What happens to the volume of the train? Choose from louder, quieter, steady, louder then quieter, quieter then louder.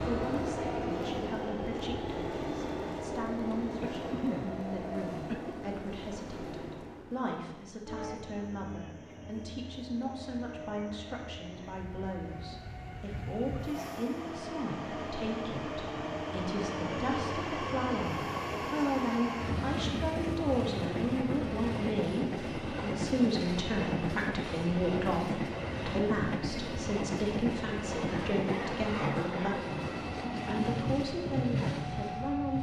quieter then louder.